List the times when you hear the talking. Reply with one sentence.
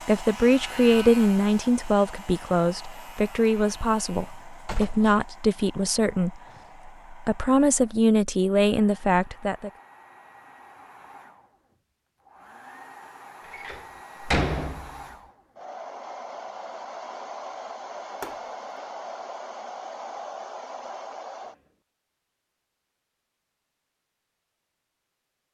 You can hear the talking from 0.1 to 9.7 s.